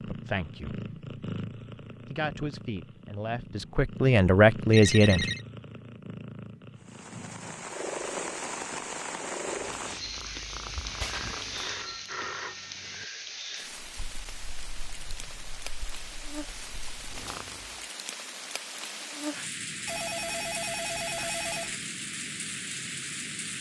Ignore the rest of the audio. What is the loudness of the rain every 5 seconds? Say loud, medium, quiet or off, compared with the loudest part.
off, loud, loud, loud, loud.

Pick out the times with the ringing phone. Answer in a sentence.
You can hear the ringing phone from 4.7 to 5.5 s, from 11.5 to 13.1 s and from 19.9 to 21.8 s.